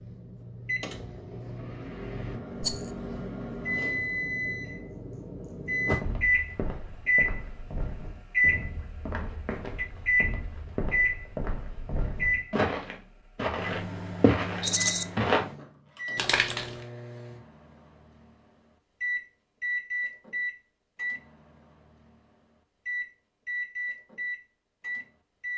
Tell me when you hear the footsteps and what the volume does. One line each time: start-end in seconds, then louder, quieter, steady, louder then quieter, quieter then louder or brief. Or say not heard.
6.0-15.4 louder.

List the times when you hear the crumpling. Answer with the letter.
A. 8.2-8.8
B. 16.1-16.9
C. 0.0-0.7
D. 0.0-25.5
B.